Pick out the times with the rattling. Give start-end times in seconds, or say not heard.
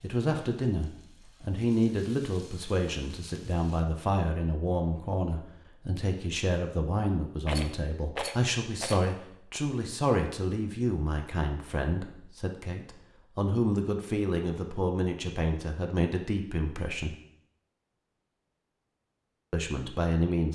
7.5-9.1.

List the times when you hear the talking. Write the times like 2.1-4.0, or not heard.
0.0-17.1, 19.5-20.4.